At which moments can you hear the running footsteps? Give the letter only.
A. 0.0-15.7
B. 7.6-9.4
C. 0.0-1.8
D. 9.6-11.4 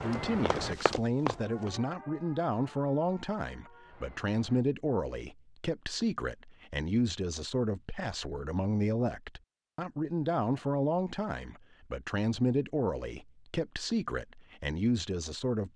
C.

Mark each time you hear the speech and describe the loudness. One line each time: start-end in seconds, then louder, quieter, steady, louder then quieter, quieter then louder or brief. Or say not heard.
0.0-15.7 steady.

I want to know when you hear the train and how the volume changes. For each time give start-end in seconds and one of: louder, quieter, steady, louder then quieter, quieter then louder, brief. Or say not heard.
not heard.